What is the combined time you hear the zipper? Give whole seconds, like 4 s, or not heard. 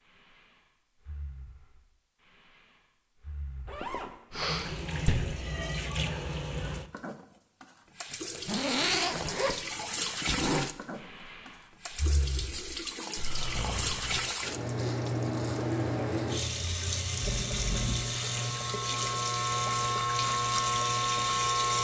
4 s.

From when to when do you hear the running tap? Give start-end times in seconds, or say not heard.
4.3-21.7.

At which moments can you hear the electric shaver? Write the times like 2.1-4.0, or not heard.
14.6-21.7.